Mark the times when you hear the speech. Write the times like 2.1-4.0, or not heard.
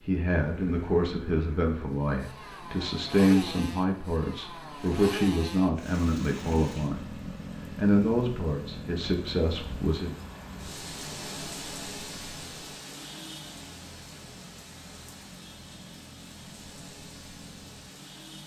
0.1-7.2, 7.8-10.2.